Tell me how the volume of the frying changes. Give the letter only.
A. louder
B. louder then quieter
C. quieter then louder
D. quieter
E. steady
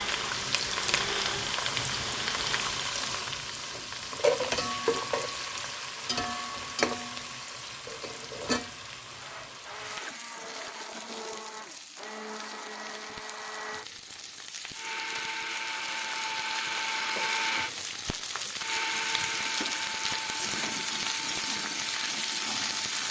C.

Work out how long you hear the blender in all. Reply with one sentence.
The blender can be heard for 17 seconds in total.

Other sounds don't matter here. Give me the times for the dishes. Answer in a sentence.
You can't hear the dishes here.